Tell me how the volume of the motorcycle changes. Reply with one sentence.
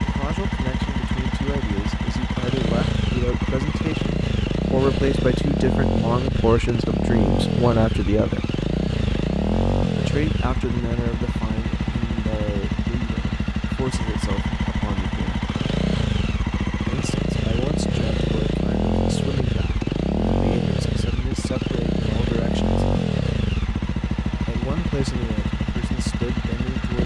The loudness of the motorcycle stays about the same.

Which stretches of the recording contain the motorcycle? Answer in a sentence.
You can hear the motorcycle from 0.0 to 27.0 s.